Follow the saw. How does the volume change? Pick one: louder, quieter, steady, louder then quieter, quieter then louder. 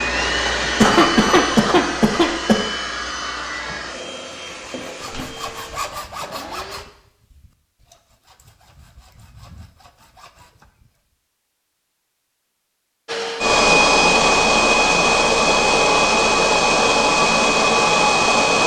quieter then louder.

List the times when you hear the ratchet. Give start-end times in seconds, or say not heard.
not heard.